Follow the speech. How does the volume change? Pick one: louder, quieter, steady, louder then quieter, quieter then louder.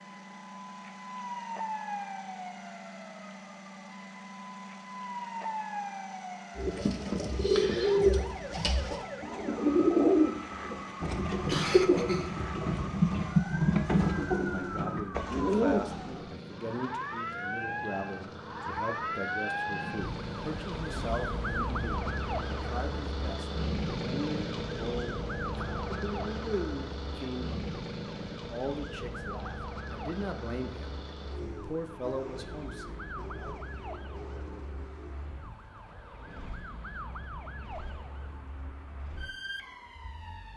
steady.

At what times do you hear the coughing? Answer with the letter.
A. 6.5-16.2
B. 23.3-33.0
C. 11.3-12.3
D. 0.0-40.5
C.